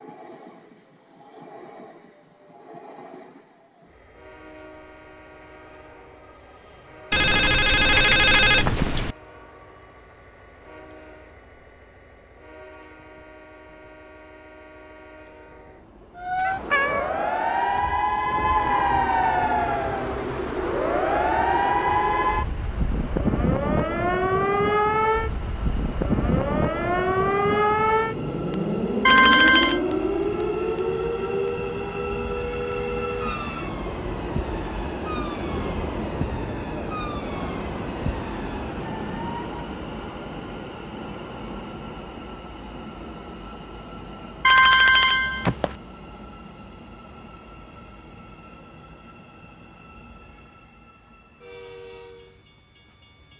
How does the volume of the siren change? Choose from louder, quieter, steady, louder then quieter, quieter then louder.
quieter.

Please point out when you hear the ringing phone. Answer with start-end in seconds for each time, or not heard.
7.1-9.2, 29.1-29.8, 44.4-45.8.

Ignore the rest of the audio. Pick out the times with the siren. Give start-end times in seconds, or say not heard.
16.1-39.8.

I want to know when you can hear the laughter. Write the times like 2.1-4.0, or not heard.
not heard.